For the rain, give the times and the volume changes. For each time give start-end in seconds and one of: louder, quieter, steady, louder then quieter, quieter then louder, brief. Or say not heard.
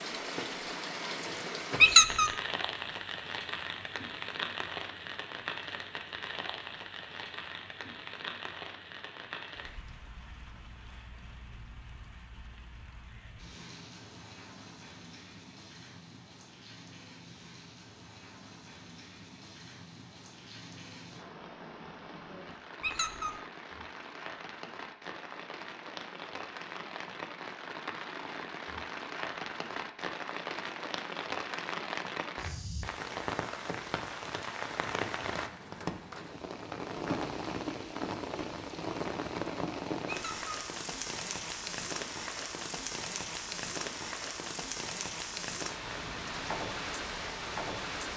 0.0-48.1 quieter then louder.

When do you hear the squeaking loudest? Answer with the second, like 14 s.
2 s.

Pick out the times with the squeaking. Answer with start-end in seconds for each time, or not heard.
1.8-2.3, 22.8-23.4, 40.0-40.6.